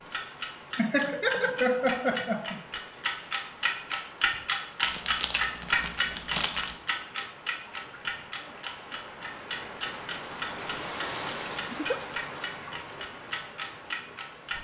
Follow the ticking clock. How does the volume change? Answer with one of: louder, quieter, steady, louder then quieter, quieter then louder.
louder then quieter.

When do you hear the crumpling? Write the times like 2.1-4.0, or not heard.
4.8-6.8.